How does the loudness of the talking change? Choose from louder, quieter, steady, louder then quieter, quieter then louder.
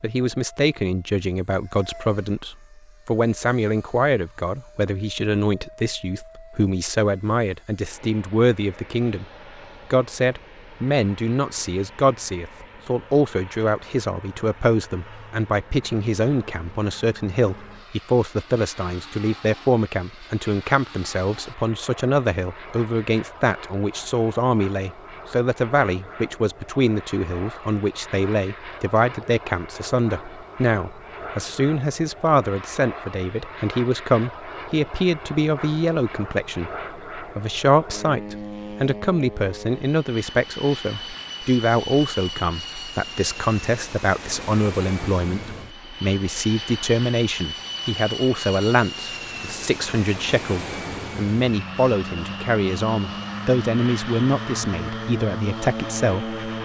steady.